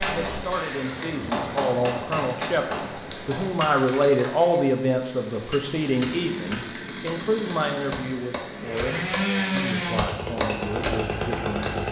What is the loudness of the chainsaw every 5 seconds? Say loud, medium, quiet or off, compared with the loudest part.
medium, loud, loud.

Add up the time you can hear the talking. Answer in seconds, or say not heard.
12 s.